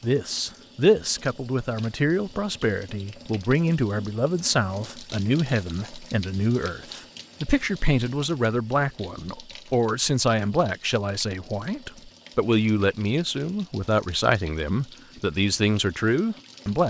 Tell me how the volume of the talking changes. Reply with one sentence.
The volume of the talking stays about the same.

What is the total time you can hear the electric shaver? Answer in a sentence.
You can't hear the electric shaver here.